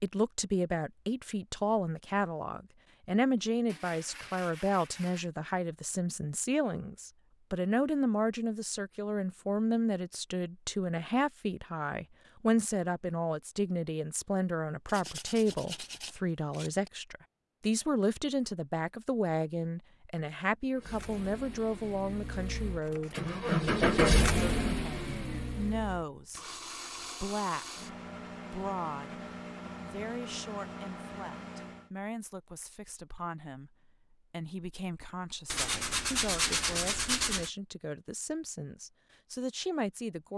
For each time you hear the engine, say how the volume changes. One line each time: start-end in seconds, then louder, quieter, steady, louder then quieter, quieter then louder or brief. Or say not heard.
20.8-31.9 louder then quieter.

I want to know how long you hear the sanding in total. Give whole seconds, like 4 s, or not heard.
6 s.